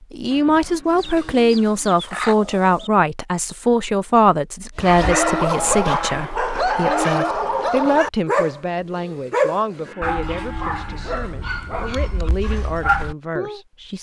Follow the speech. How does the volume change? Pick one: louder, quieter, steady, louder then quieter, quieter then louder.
quieter.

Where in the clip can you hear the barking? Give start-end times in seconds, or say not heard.
4.8-13.6.